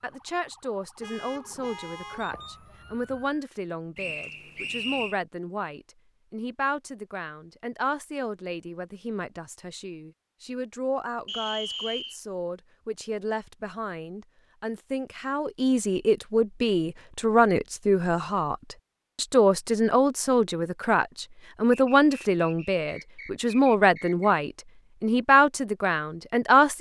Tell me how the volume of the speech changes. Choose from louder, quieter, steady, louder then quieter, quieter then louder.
louder.